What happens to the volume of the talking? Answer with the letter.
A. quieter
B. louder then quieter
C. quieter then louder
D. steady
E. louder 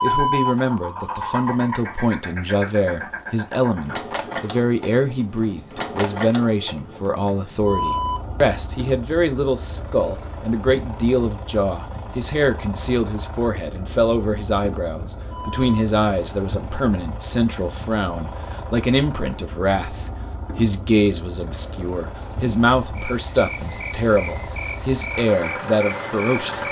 D.